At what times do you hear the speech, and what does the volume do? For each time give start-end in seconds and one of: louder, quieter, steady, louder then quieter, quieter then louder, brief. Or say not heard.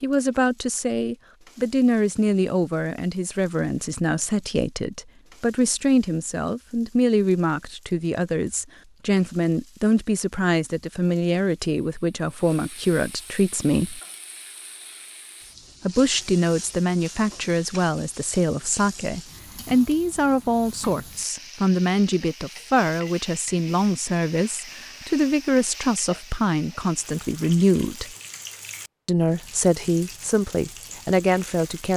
0.0-14.0 steady
15.8-28.1 steady
29.1-31.9 brief.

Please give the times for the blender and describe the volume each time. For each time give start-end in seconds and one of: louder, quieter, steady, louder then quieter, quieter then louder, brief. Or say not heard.
not heard.